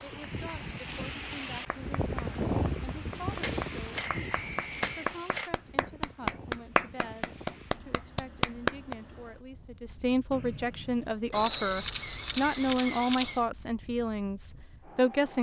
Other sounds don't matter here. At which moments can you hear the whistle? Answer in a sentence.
You can hear the whistle from 4.0 to 5.2 s and from 10.3 to 11.9 s.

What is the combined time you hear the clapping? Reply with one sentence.
You can hear the clapping for 7 seconds altogether.